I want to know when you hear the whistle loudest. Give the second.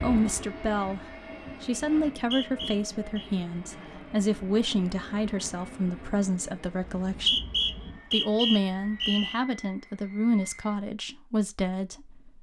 7 s.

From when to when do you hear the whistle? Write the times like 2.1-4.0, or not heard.
2.1-3.3, 6.8-9.4.